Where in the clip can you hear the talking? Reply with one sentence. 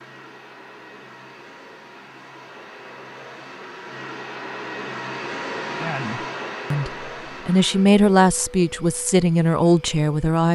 You can hear the talking from 5.8 to 10.4 s.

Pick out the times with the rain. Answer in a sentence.
The rain can't be heard in this clip.